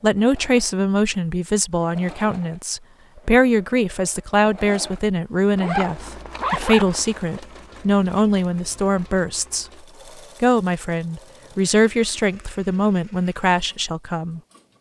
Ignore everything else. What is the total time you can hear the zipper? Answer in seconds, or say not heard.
2 s.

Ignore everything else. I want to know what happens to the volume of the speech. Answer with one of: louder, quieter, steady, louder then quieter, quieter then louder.
steady.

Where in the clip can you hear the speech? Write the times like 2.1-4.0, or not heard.
0.0-9.7, 10.4-14.4.